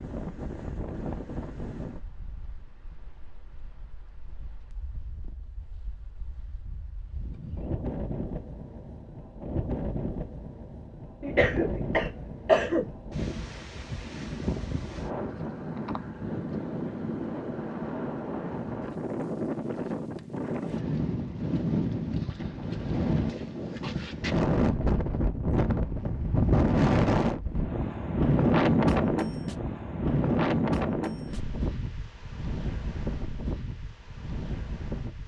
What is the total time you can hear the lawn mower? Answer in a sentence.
You can't hear the lawn mower here.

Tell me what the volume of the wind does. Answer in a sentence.
The volume of the wind goes up.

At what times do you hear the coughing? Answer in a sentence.
The coughing can be heard from 11.2 to 12.8 s.